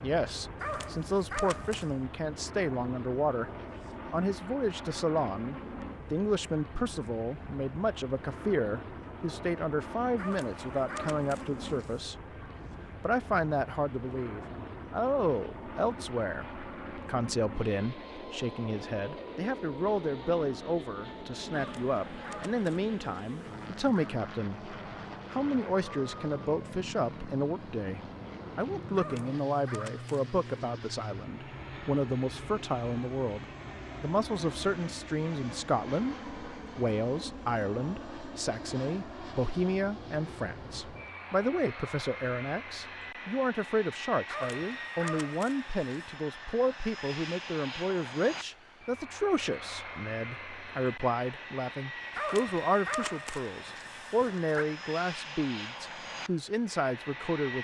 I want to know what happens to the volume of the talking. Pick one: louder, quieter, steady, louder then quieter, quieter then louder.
steady.